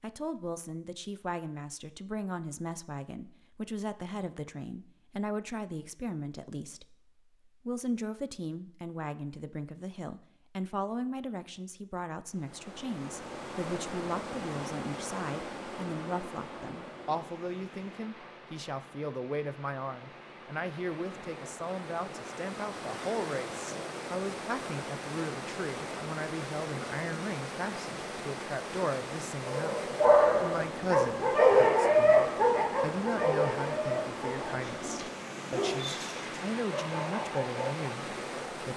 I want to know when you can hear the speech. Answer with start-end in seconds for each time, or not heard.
0.0-38.7.